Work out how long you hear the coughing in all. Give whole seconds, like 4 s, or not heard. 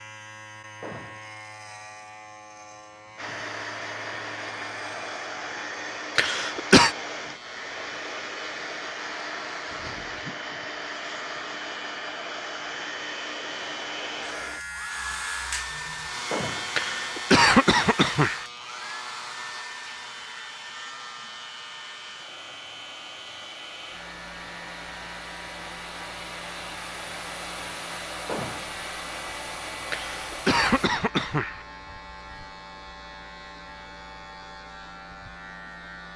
4 s.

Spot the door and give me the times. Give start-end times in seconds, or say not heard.
0.8-1.4, 16.3-16.9, 28.2-28.8.